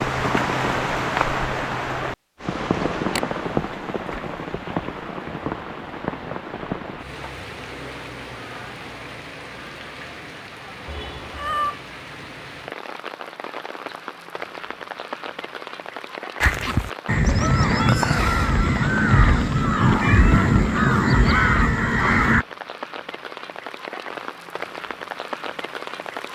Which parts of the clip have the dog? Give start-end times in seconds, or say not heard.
not heard.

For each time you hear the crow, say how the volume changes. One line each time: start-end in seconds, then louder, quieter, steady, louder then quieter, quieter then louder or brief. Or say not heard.
16.4-22.4 steady.